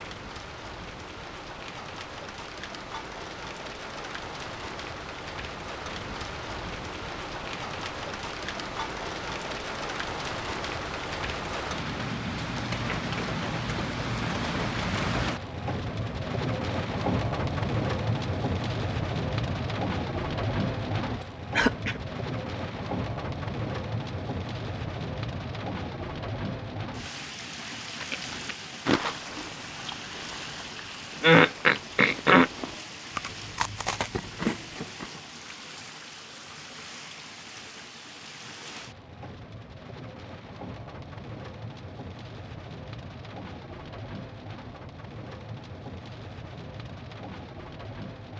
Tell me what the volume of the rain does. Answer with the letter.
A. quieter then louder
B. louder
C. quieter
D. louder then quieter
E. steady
D.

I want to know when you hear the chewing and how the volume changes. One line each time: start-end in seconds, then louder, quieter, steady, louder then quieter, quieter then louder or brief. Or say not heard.
27.9-35.1 quieter then louder.